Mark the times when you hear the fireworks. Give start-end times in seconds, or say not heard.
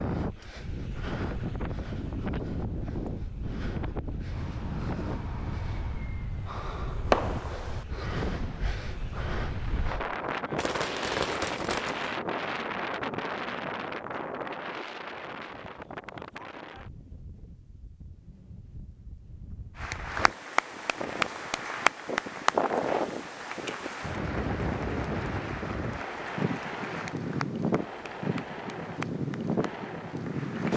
4.3-12.2.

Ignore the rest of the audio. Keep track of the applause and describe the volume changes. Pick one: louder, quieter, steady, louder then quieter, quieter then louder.
quieter.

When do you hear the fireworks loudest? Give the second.
7 s.